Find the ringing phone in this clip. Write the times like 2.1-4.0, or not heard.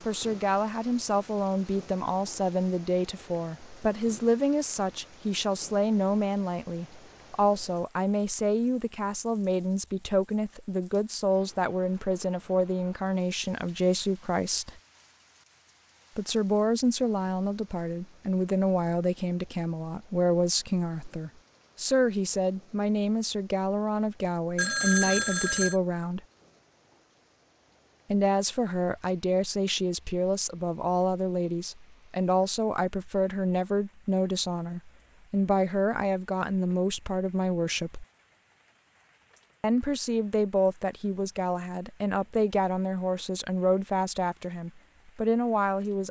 24.6-25.8.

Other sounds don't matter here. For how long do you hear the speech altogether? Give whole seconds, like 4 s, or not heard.
41 s.